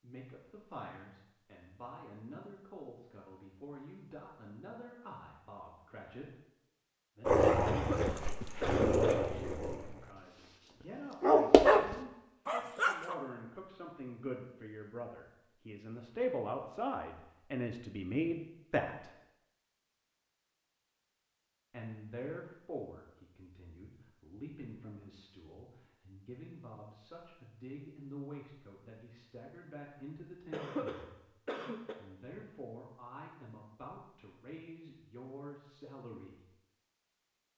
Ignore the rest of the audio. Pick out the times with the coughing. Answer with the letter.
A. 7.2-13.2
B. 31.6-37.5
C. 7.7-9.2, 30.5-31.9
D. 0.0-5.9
C.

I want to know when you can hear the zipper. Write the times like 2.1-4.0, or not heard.
not heard.